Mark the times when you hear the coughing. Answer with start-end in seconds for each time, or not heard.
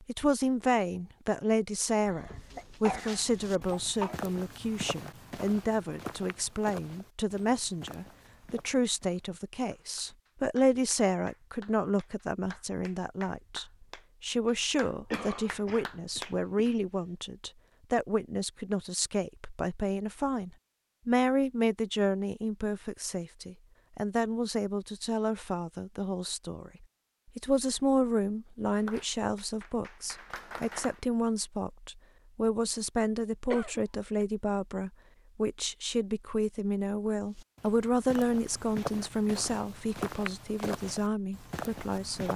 2.0-4.2, 15.1-16.8, 33.5-34.2.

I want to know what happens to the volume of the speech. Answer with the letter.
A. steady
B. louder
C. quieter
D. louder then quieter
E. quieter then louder
A.